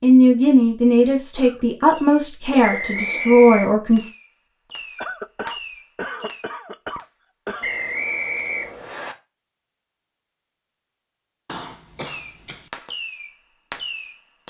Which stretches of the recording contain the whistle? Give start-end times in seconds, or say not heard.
2.6-3.8, 7.6-9.2.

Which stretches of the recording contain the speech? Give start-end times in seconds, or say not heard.
0.0-4.1.